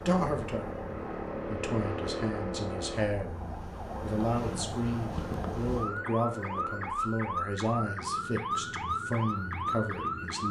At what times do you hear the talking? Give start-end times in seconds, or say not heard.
0.1-0.7, 1.4-10.4.